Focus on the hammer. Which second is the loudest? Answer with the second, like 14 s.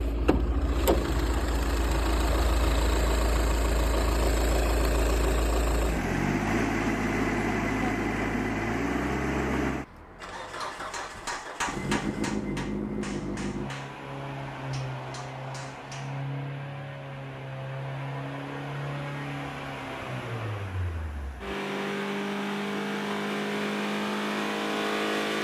12 s.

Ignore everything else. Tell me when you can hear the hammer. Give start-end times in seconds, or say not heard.
10.3-16.2.